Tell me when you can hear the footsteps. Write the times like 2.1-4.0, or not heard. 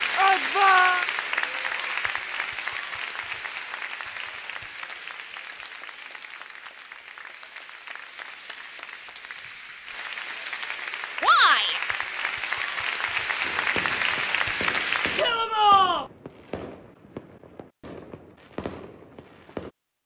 not heard.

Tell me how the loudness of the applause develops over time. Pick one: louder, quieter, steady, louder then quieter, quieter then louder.
quieter then louder.